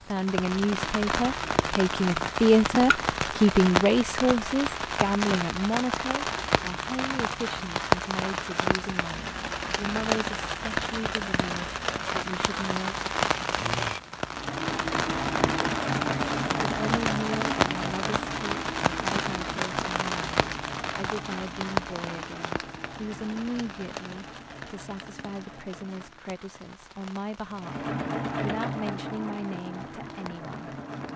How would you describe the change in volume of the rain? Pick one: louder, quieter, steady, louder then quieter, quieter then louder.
quieter.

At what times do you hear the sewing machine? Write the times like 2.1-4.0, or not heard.
14.2-26.2, 27.6-31.1.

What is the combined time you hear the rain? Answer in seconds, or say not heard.
31 s.